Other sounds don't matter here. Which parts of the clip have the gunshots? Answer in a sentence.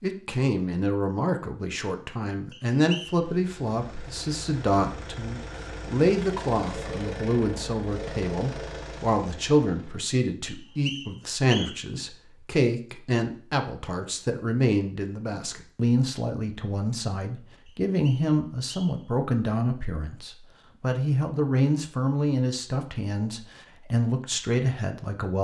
The gunshots can't be heard in this clip.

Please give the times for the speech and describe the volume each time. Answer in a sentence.
The speech can be heard from 0.0 to 25.3 s, at a steady volume.